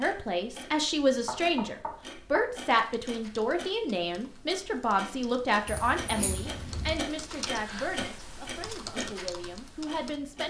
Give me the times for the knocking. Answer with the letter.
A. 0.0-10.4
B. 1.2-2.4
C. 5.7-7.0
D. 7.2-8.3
B.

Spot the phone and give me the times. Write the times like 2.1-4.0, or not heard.
5.7-7.0.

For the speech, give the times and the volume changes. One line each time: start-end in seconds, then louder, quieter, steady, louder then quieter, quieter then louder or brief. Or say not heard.
0.0-10.4 quieter.